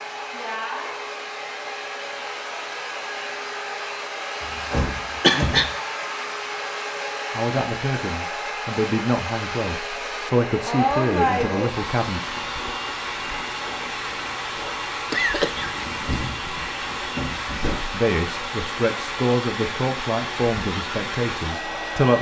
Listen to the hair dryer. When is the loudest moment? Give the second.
11 s.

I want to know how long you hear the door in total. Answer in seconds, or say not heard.
4 s.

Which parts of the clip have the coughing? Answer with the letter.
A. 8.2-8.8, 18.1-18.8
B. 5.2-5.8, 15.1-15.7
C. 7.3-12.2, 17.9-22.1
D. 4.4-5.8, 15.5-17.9
B.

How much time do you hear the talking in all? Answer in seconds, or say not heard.
9 s.